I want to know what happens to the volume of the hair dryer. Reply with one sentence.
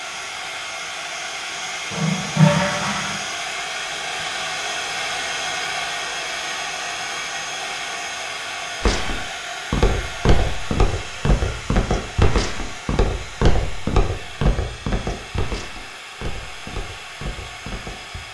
The loudness of the hair dryer goes down.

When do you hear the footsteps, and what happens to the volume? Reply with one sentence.
You can hear the footsteps from 8.8 to 18.2 s, getting quieter.